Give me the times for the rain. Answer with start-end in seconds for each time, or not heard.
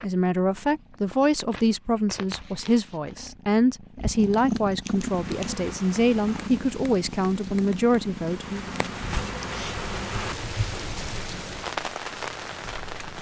4.8-13.1.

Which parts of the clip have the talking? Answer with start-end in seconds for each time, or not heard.
0.0-8.6.